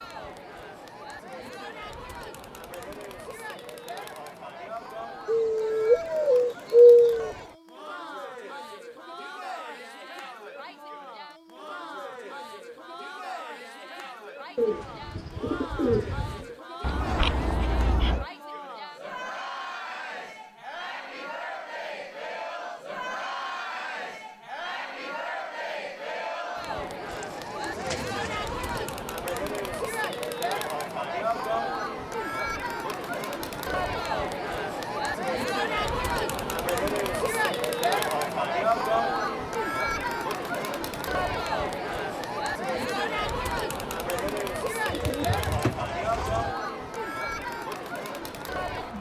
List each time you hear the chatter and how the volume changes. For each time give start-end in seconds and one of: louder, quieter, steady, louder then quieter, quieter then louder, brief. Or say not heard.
0.0-48.9 louder.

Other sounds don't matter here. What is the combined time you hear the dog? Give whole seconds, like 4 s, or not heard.
not heard.